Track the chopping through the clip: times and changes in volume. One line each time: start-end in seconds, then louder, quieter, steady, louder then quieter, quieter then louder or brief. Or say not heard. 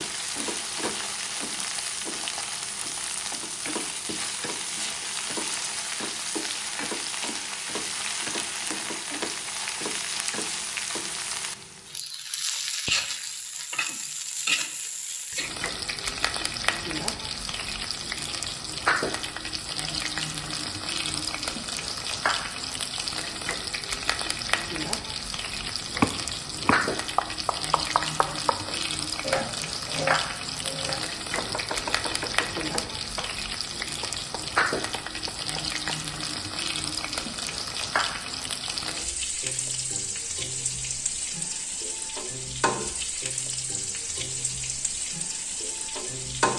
25.6-36.0 quieter.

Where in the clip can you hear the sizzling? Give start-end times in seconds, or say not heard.
0.0-46.5.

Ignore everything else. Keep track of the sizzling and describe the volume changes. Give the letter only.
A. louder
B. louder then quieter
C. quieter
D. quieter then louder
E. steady
E.